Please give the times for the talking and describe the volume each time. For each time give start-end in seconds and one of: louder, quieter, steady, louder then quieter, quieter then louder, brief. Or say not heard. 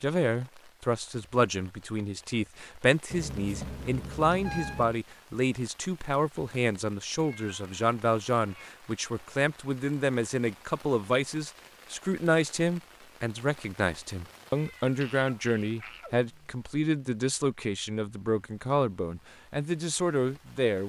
0.0-20.8 steady.